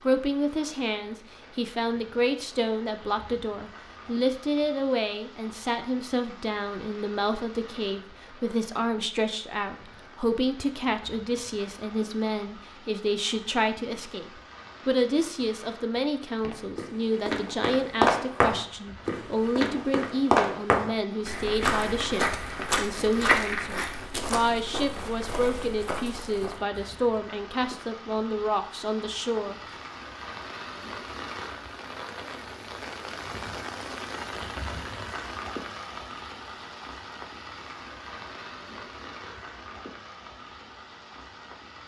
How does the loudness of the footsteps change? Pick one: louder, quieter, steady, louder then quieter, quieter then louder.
quieter.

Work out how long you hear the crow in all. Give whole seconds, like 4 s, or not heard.
not heard.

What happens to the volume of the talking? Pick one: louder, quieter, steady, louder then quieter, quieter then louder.
steady.